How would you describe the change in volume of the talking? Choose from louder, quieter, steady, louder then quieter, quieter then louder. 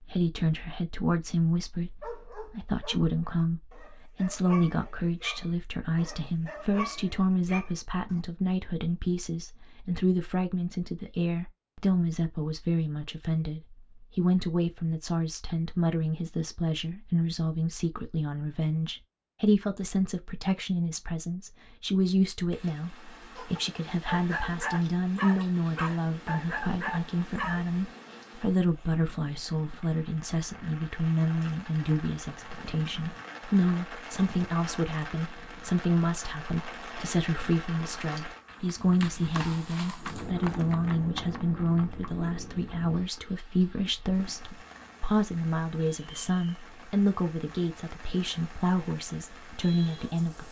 steady.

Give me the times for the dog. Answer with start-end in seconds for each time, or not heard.
2.0-8.2, 23.4-27.7.